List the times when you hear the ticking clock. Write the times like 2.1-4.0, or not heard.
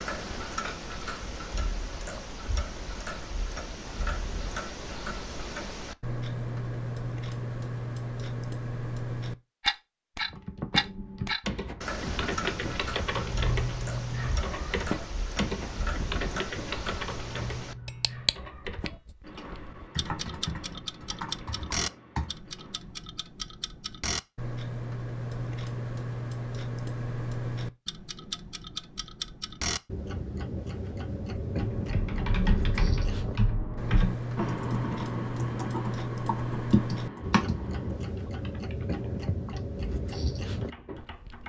0.0-41.4.